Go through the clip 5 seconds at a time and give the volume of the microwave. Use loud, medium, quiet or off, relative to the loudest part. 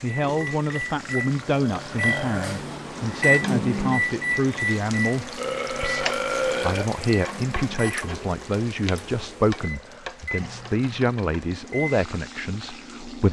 loud, medium, medium.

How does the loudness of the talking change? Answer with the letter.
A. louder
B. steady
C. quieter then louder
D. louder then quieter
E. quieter
B.